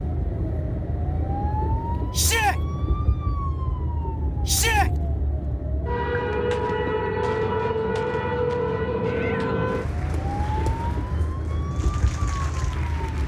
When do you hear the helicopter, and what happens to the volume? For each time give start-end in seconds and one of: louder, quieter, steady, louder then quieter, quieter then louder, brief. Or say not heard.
not heard.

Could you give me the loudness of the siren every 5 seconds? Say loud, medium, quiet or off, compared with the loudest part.
medium, loud, medium.